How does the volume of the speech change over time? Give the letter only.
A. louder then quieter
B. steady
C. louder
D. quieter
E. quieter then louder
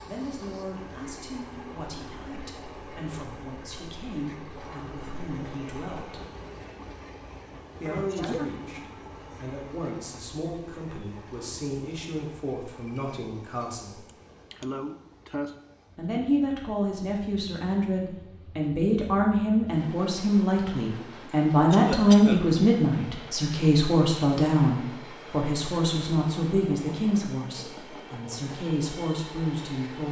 A.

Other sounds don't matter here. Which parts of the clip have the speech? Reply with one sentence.
You can hear the speech from 0.1 to 6.2 s, from 7.8 to 14.0 s and from 15.9 to 30.0 s.